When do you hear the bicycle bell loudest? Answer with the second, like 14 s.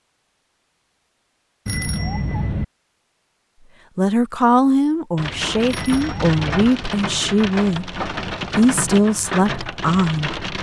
2 s.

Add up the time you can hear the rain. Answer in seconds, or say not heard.
5 s.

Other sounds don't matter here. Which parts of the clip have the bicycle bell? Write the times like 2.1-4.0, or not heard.
1.6-2.6, 5.7-6.7.